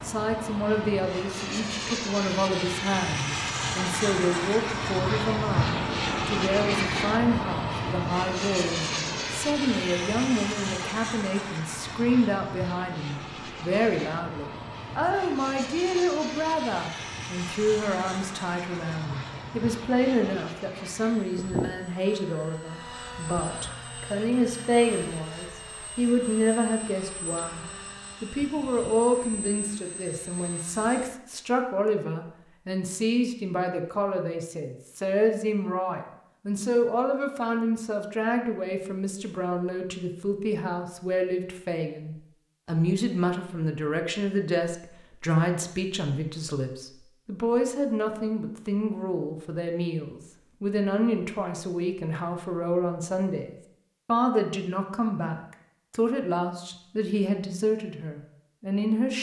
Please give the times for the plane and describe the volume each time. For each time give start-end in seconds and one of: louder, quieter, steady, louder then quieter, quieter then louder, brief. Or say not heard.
0.0-31.1 quieter.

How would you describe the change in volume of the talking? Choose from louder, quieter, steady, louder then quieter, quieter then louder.
steady.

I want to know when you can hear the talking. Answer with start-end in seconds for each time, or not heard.
0.0-59.1.